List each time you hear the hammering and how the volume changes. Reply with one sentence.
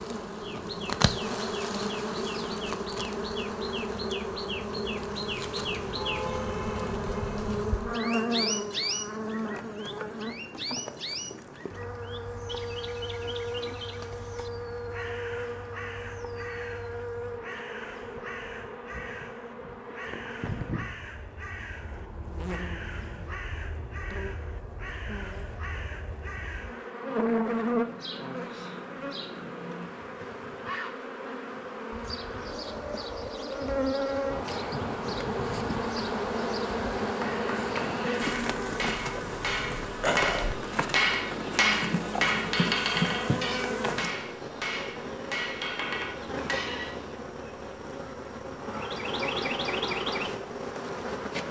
The hammering can be heard from 37.0 to 47.1 s, getting louder then quieter.